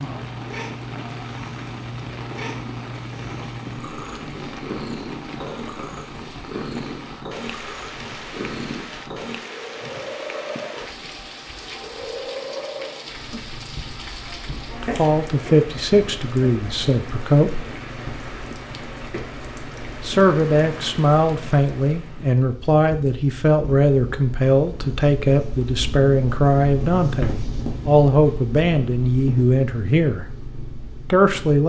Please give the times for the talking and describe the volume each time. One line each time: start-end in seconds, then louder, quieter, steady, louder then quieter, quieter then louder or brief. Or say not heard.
14.8-17.6 brief
20.0-30.2 steady
31.1-31.6 brief.